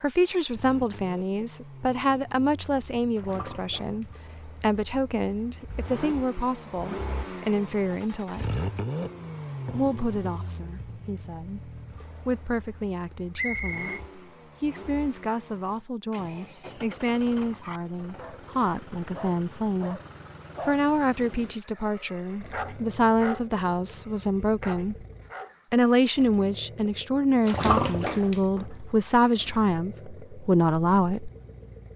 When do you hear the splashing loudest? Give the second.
28 s.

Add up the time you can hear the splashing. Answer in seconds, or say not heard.
3 s.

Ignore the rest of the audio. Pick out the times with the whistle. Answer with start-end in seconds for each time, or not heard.
13.3-14.0.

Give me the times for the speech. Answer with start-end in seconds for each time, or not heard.
0.0-8.6, 9.8-20.0, 20.6-25.1, 25.7-31.3.